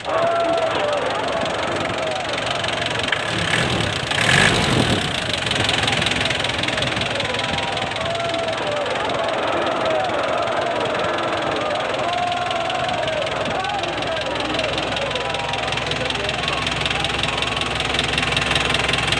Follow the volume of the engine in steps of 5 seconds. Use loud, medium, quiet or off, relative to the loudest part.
loud, loud, medium, loud.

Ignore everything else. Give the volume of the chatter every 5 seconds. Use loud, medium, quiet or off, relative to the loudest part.
loud, loud, loud, medium.